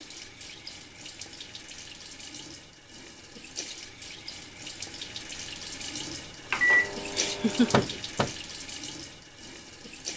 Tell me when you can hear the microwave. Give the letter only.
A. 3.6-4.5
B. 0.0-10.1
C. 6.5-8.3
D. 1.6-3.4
C.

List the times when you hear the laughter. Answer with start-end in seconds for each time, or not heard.
7.1-8.0.